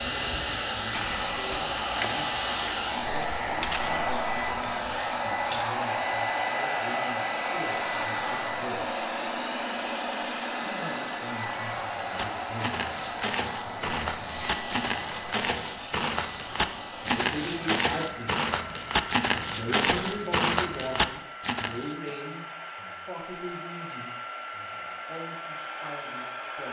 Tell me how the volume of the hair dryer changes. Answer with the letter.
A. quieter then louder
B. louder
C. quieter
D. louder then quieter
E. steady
C.